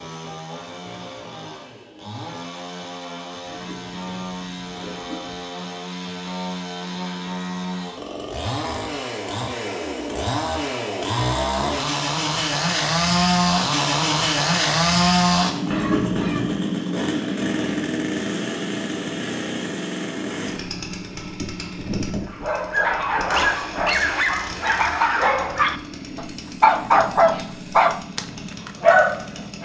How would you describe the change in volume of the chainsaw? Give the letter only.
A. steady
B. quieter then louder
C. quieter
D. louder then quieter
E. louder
D.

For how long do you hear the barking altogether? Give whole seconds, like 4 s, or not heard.
7 s.